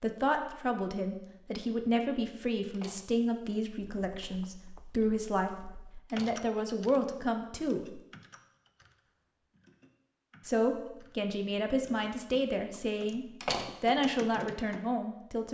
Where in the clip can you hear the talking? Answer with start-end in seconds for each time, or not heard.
0.0-5.5, 6.1-8.0, 10.4-15.5.